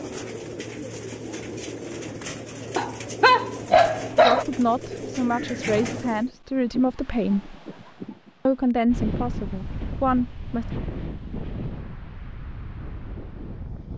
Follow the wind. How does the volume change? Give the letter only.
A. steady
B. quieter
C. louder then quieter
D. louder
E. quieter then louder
C.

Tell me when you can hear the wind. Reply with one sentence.
The wind can be heard from 6.5 to 13.9 s.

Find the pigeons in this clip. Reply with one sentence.
You can hear the pigeons from 0.0 to 6.3 s.